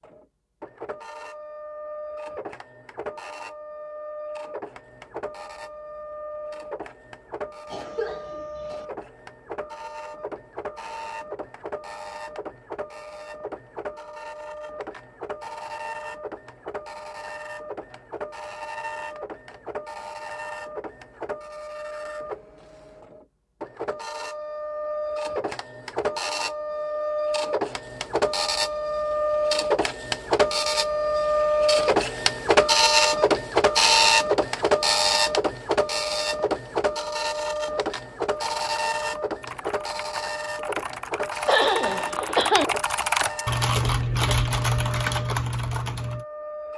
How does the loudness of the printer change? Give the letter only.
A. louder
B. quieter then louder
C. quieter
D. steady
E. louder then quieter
E.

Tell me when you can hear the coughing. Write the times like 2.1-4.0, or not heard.
7.7-8.8, 41.5-42.6.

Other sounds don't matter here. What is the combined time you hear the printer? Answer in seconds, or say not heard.
47 s.